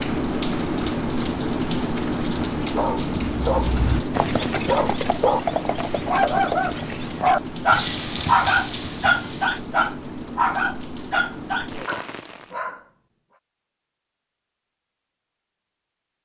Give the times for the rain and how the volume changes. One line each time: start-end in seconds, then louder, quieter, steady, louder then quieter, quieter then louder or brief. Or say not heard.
0.0-12.6 quieter.